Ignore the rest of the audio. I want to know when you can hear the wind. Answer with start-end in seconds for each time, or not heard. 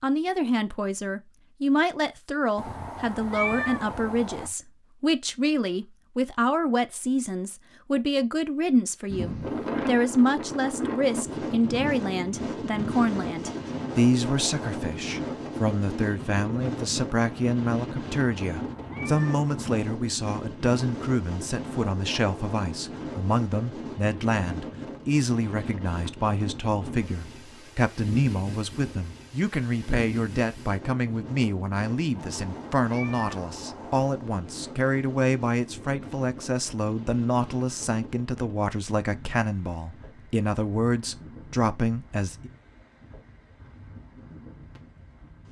9.1-45.4.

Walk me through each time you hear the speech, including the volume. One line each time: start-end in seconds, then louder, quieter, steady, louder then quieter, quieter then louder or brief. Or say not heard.
0.0-42.5 steady.